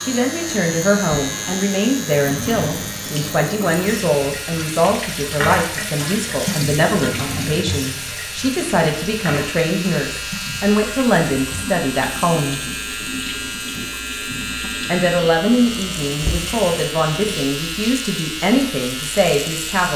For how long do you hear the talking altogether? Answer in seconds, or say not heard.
18 s.